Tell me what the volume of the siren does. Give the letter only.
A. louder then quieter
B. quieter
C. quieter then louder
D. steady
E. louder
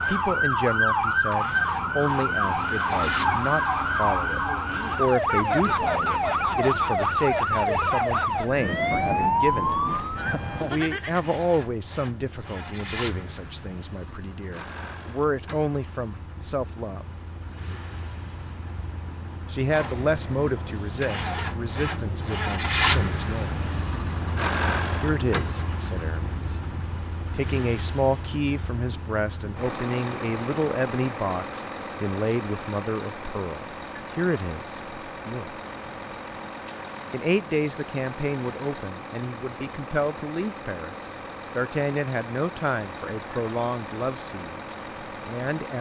D.